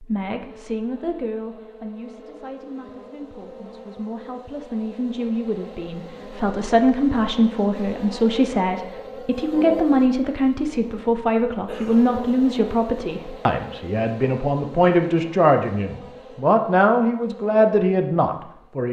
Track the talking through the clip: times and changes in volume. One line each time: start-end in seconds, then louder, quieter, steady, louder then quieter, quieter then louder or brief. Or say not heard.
0.0-18.8 louder.